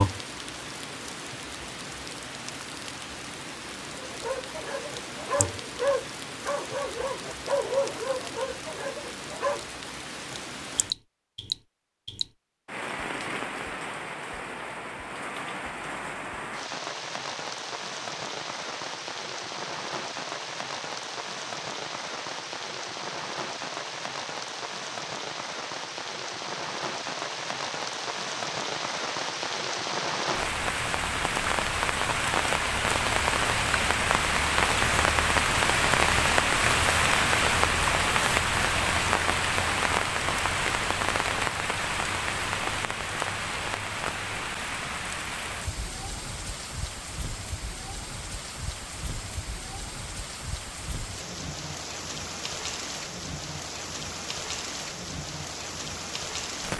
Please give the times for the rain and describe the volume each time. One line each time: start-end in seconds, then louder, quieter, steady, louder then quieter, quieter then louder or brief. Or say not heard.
0.0-56.7 louder then quieter.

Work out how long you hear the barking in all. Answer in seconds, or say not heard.
6 s.